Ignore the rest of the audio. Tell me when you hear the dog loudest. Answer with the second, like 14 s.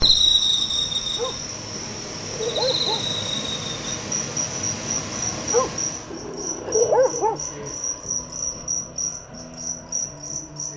7 s.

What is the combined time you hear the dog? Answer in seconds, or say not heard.
4 s.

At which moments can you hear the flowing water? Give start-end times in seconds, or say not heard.
0.0-6.2.